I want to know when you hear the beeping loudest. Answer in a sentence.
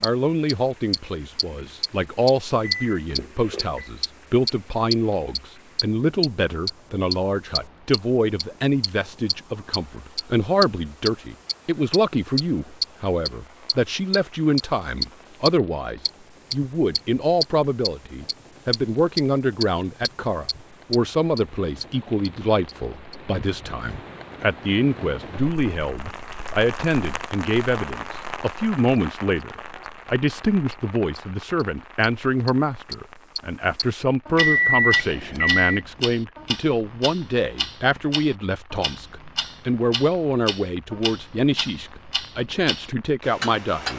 The loudest moment of the beeping is at 35 seconds.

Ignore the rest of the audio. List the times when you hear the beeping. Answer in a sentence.
The beeping can be heard from 2.6 to 3.9 s and from 34.4 to 35.8 s.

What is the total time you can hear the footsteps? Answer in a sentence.
The footsteps can't be heard in this clip.